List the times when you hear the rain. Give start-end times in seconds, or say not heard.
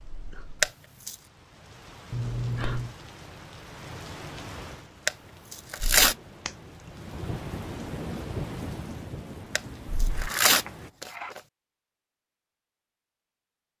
0.0-10.9.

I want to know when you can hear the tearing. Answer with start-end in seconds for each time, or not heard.
0.6-1.1, 5.0-6.2, 9.6-11.4.